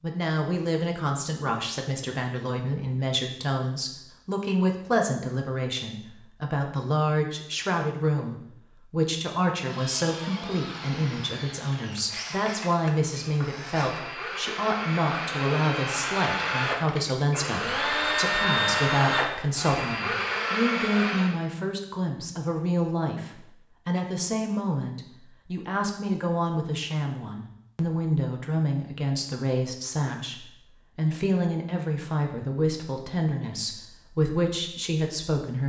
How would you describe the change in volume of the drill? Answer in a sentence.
The volume of the drill goes up.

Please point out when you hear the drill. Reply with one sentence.
The drill can be heard from 9.6 to 21.4 s.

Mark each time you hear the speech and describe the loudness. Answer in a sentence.
You can hear the speech from 0.0 to 35.6 s, at a steady volume.